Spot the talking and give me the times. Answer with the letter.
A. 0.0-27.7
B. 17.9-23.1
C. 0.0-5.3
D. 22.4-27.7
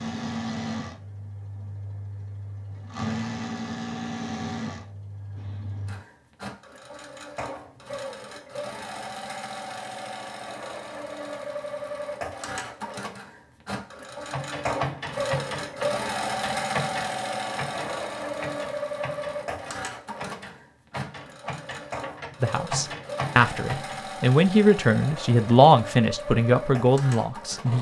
D.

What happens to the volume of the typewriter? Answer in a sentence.
The loudness of the typewriter goes down, then up.